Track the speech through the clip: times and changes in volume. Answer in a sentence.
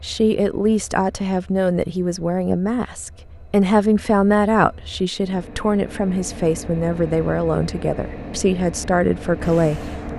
You can hear the speech from 0.0 to 9.9 s, at a steady volume.